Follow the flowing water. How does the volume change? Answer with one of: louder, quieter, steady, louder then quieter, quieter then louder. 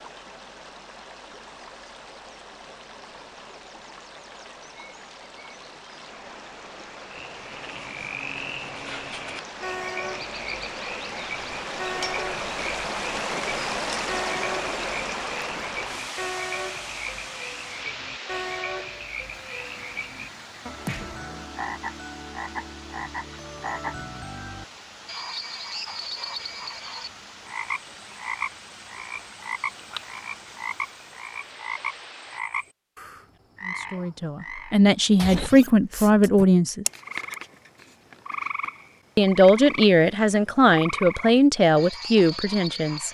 louder then quieter.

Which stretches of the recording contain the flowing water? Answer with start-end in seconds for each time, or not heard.
0.0-32.4.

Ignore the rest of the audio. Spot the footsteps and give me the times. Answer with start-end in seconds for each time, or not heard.
not heard.